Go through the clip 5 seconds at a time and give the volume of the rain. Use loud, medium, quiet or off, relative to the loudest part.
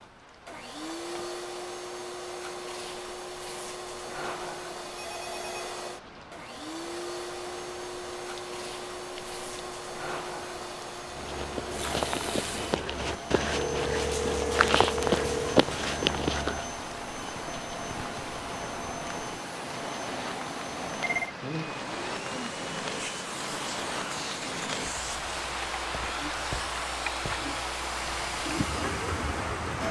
quiet, quiet, medium, medium, loud, loud.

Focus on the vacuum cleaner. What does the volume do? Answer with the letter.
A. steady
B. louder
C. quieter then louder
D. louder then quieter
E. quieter
A.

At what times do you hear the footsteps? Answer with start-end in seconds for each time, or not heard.
11.1-16.7.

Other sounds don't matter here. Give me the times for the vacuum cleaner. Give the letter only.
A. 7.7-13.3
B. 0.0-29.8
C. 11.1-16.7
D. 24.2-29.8
B.